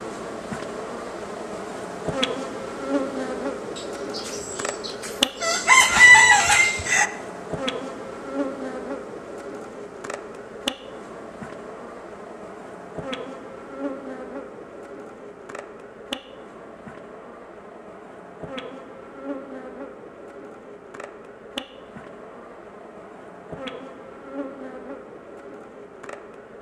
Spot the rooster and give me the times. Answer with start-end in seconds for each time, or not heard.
3.8-7.0.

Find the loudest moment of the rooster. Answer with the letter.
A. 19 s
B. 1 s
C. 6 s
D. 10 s
C.